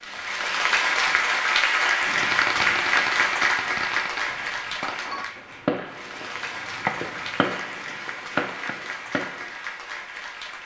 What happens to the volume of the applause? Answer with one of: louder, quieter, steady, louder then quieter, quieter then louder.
quieter.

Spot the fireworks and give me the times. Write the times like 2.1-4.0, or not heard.
2.2-9.6.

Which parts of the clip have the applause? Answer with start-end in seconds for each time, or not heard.
0.0-10.6.